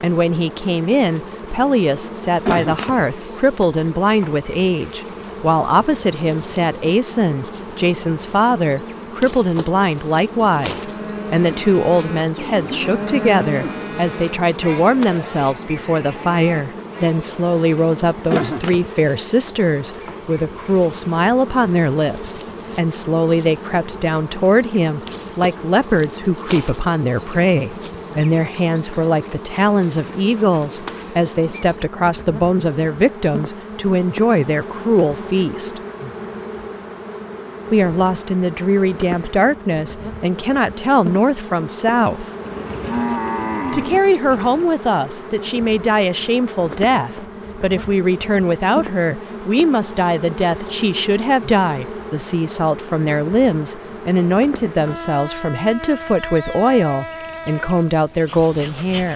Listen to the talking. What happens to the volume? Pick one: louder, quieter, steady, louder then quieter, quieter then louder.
steady.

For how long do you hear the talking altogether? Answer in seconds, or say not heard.
56 s.